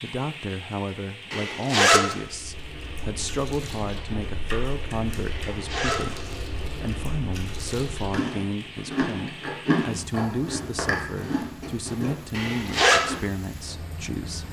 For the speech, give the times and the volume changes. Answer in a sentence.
You can hear the speech from 0.0 to 14.4 s, at a steady volume.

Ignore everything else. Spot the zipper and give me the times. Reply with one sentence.
You can hear the zipper from 1.3 to 2.0 s, from 5.2 to 6.4 s and from 12.3 to 13.0 s.